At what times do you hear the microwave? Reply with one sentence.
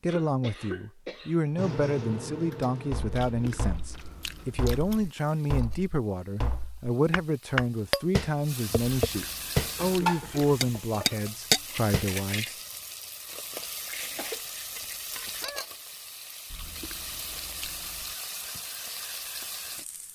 The microwave can be heard from 1.6 to 3.6 s.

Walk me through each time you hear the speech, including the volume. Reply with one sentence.
You can hear the speech from 0.0 to 12.6 s, at a steady volume.